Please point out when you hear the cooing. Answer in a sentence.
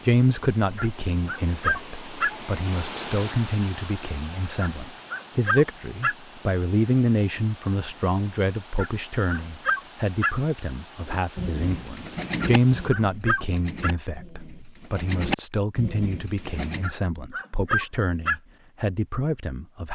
You can hear the cooing from 11.1 to 16.9 s.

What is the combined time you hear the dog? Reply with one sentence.
The dog can be heard for 8 seconds in total.